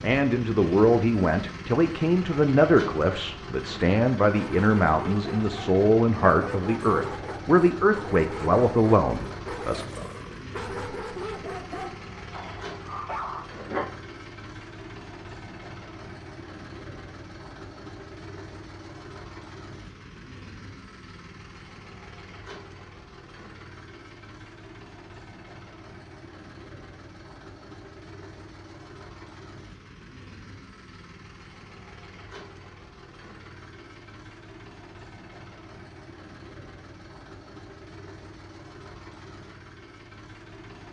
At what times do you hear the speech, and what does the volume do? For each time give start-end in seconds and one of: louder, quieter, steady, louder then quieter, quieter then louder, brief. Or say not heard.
0.0-9.8 steady.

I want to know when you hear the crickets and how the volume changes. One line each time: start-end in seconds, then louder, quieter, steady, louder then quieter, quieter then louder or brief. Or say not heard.
not heard.